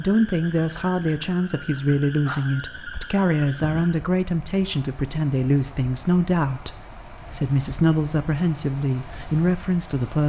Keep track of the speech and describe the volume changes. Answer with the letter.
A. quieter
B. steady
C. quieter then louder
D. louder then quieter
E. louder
B.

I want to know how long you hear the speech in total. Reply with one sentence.
You can hear the speech for 10 seconds altogether.